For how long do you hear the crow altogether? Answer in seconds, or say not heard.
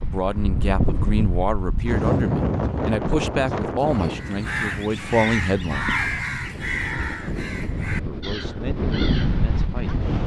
6 s.